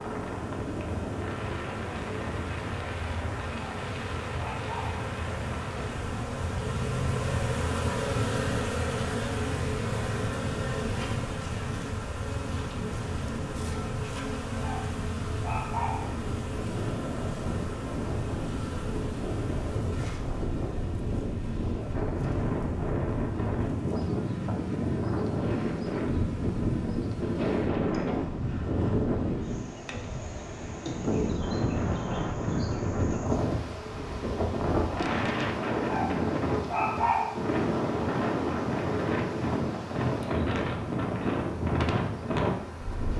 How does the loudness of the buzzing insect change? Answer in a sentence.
The volume of the buzzing insect goes down.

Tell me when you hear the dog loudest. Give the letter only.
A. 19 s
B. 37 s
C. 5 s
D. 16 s
B.